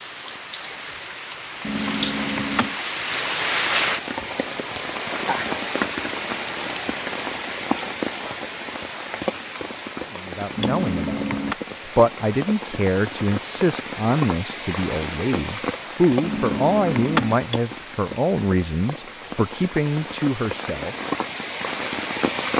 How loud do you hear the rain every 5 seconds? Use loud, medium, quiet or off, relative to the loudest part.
loud, loud, medium, medium, loud.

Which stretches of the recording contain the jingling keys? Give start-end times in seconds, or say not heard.
1.6-2.8, 10.6-11.6, 16.2-17.4.